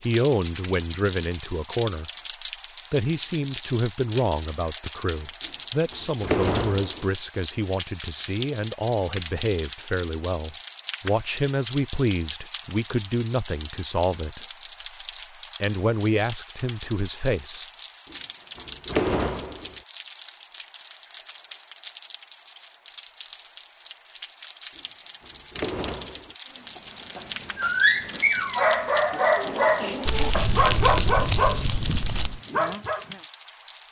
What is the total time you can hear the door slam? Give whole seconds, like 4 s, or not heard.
5 s.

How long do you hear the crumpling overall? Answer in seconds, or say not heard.
2 s.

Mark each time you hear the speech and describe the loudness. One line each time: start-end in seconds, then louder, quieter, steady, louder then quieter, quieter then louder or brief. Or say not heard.
0.0-2.1 brief
2.9-14.4 steady
15.6-17.6 brief.